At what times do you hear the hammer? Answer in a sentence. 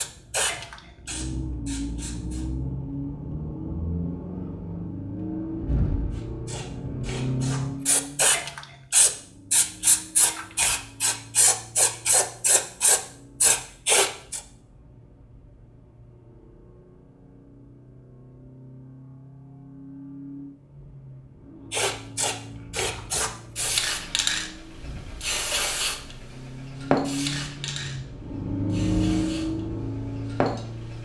The hammer can't be heard in this clip.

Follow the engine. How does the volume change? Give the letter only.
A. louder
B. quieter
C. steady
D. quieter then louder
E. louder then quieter
D.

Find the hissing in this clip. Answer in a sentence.
You can hear the hissing from 0.0 to 2.5 s, from 6.1 to 14.4 s and from 21.7 to 31.0 s.